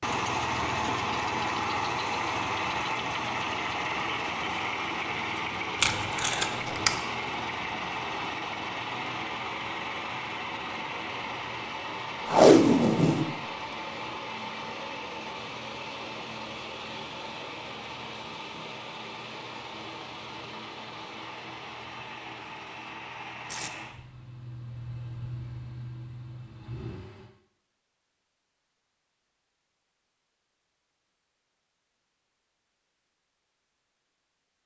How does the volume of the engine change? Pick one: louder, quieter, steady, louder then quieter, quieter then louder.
quieter.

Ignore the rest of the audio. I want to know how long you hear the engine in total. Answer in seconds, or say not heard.
27 s.